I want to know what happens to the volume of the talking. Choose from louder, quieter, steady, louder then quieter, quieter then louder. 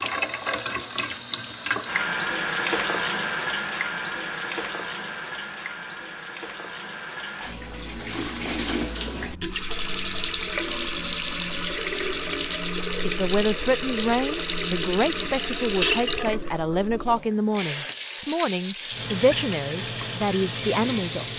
steady.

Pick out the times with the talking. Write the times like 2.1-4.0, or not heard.
13.1-21.3.